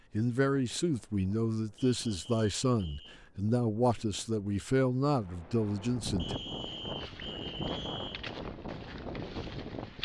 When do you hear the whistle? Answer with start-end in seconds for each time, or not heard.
1.8-3.2, 6.2-8.2.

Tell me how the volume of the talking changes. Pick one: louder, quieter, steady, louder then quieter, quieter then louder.
steady.